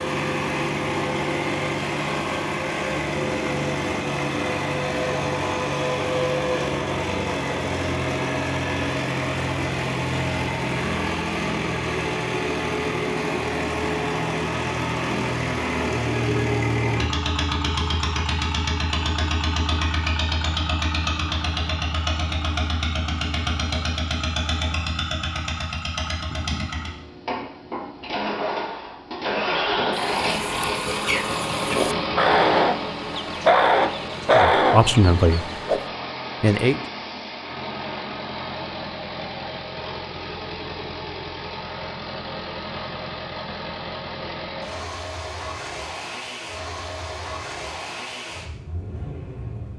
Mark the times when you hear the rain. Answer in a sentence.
You can't hear the rain here.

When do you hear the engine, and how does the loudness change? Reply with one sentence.
You can hear the engine from 0.0 to 49.7 s, getting quieter.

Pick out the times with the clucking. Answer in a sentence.
The clucking can be heard from 29.9 to 35.8 s.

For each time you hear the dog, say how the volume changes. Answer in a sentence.
You can't hear the dog here.